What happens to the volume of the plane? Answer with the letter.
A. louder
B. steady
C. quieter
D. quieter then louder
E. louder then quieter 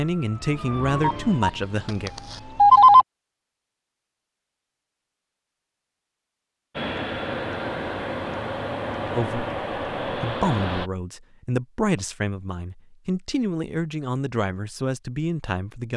B.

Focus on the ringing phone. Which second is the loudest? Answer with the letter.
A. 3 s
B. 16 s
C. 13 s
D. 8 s
A.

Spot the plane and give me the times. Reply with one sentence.
The plane can be heard from 6.8 to 10.9 s.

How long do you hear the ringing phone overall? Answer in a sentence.
The ringing phone can be heard for 2 seconds in total.